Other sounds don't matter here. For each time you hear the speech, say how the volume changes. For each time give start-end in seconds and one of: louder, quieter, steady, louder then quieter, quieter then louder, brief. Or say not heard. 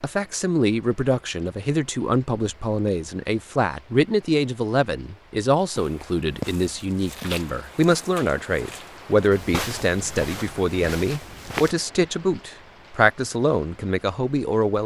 0.0-14.8 steady.